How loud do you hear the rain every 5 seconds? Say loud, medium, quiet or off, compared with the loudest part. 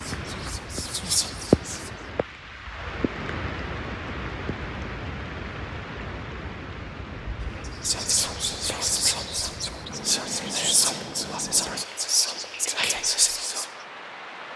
loud, medium, medium.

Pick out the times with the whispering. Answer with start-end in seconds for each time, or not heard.
0.0-1.9, 7.5-13.7.